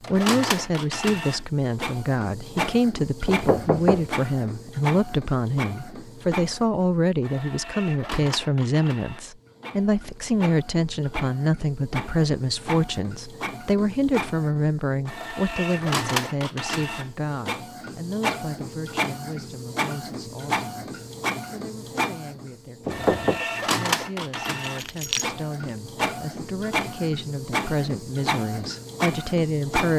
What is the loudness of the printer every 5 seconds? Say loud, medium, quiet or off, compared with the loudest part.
loud, medium, medium, loud, loud, loud.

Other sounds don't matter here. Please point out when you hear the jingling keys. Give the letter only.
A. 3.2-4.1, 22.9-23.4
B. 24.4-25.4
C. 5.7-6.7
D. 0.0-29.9
B.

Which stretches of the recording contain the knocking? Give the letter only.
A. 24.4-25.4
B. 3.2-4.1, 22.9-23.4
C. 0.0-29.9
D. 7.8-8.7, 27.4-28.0
B.